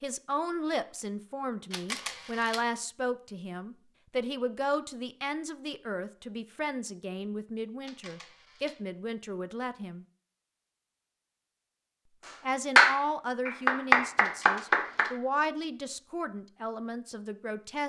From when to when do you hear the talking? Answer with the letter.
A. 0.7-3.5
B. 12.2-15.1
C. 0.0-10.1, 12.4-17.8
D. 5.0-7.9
C.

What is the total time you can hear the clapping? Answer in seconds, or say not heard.
3 s.